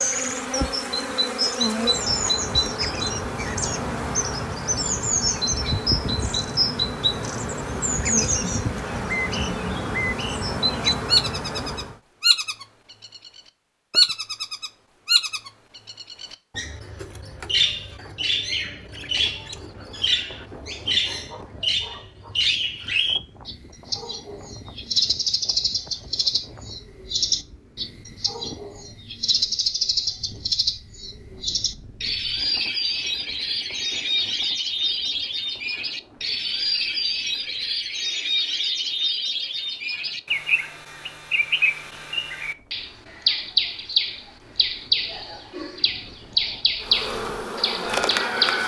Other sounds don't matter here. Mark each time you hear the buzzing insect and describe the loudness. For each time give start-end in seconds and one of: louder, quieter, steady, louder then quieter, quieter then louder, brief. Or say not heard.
0.0-12.0 steady
46.8-48.6 brief.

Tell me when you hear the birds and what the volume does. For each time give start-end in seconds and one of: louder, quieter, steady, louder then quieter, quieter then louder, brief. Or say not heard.
0.0-48.6 steady.